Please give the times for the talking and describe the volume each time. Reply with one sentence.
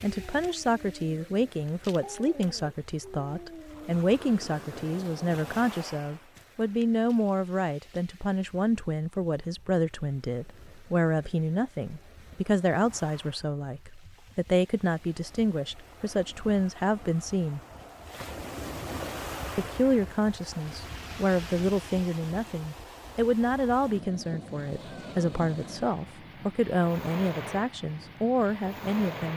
The talking can be heard from 0.0 to 17.6 s, at a steady volume; and from 19.6 to 29.3 s, at a steady volume.